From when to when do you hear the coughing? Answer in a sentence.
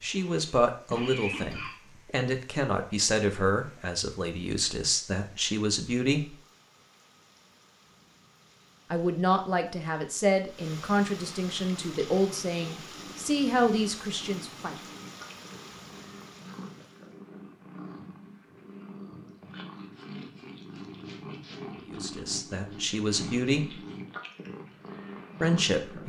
The coughing can be heard from 0.1 to 1.9 s.